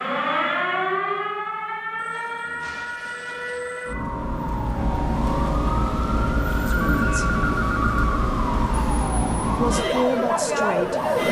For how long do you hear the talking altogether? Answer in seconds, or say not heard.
2 s.